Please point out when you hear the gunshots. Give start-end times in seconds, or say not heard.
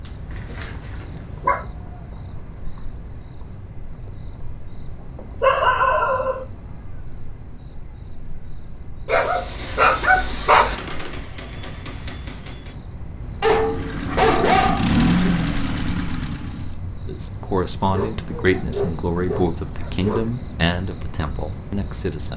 10.7-12.8.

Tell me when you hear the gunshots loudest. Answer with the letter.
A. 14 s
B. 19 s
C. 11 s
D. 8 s
C.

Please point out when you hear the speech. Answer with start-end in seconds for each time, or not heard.
17.1-22.3.